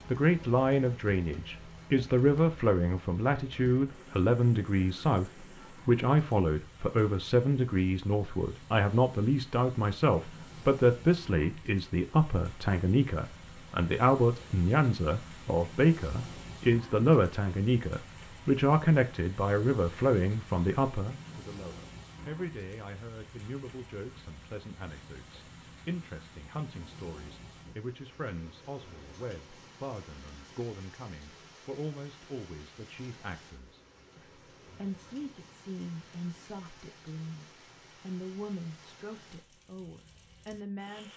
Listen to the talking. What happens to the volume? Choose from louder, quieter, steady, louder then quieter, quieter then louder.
quieter.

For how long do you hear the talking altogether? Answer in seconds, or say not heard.
41 s.